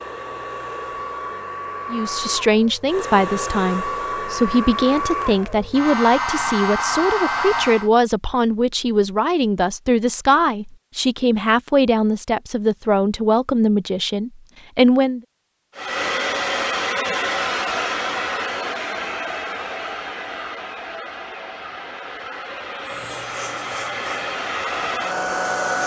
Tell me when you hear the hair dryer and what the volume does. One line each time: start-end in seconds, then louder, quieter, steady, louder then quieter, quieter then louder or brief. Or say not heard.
0.0-7.9 louder
15.8-25.8 quieter then louder.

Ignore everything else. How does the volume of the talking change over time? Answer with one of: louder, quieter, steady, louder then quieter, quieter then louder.
steady.